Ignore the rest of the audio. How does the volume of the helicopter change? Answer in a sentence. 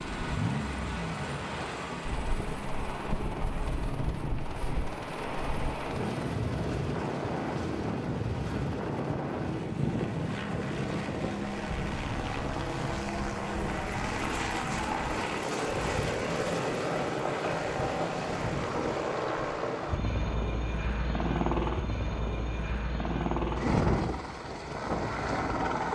The loudness of the helicopter goes up.